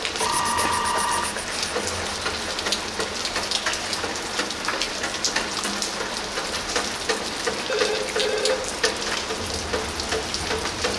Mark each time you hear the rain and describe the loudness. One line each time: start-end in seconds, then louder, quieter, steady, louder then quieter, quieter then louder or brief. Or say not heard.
0.0-10.9 steady.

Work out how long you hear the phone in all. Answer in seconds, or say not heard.
3 s.